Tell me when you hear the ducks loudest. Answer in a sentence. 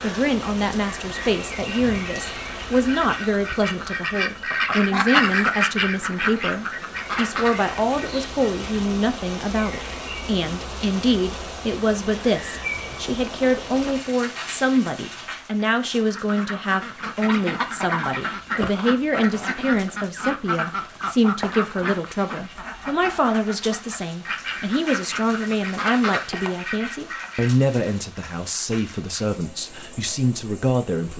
The loudest moment of the ducks is at 5 seconds.